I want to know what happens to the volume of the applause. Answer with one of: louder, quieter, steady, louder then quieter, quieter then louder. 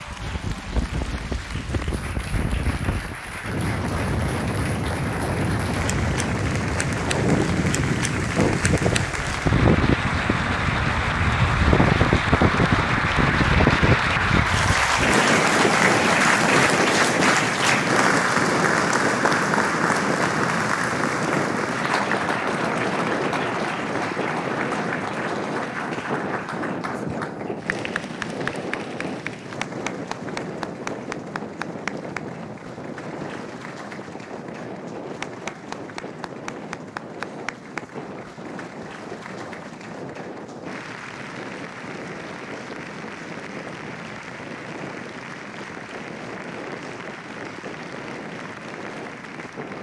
louder then quieter.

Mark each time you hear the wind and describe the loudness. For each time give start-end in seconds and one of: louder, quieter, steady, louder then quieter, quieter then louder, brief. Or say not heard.
0.0-49.7 quieter.